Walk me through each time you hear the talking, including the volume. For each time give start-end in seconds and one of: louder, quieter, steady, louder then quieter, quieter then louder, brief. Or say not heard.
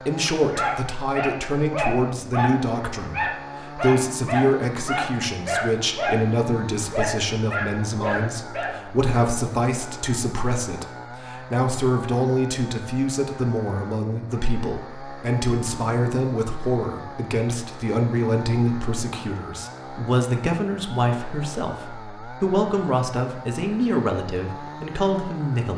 0.0-25.7 steady.